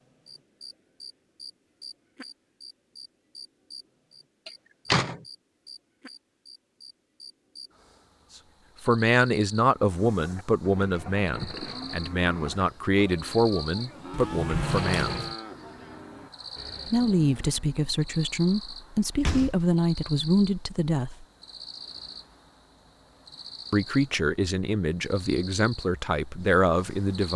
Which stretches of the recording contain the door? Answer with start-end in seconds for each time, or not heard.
4.5-5.2, 14.1-15.3, 19.1-19.7.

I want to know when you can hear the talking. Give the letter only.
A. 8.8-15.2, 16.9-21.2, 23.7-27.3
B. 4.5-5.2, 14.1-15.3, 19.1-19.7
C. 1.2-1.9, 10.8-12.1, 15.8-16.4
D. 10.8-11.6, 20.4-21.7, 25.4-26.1
A.